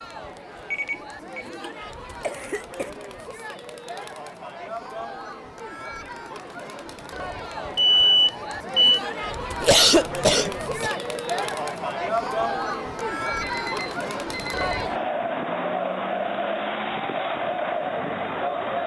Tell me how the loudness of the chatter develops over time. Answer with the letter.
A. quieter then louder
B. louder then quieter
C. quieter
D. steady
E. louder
E.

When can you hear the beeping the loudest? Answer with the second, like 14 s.
8 s.